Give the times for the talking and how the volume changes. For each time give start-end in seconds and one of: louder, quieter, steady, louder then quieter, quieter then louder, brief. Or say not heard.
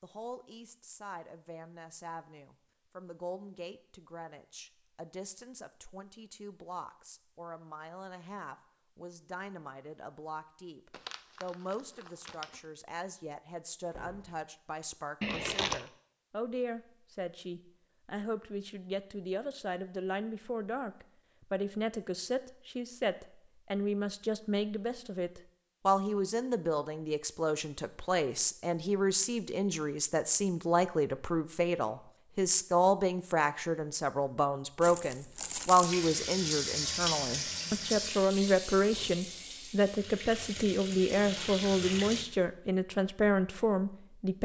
0.0-44.3 louder.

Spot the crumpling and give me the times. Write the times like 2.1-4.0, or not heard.
10.9-12.6, 15.2-15.8, 34.8-35.9.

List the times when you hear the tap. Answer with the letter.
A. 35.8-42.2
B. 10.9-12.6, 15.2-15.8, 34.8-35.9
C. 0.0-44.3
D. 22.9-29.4
A.